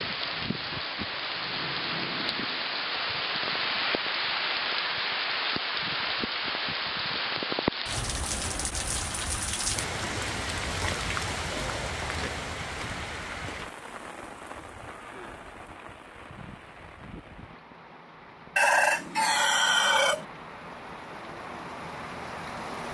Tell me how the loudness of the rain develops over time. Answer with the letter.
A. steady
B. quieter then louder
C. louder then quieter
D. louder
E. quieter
E.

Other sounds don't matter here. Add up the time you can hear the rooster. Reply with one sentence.
You can hear the rooster for 2 seconds altogether.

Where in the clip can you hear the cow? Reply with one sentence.
You can't hear the cow here.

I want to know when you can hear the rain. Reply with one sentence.
You can hear the rain from 0.0 to 22.9 s.